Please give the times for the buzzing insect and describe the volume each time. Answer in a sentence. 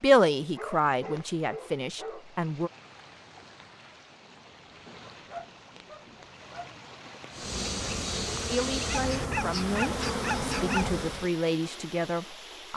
The buzzing insect can be heard from 7.3 to 11.3 s, at a steady volume.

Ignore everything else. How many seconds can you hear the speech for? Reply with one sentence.
You can hear the speech for 7 seconds altogether.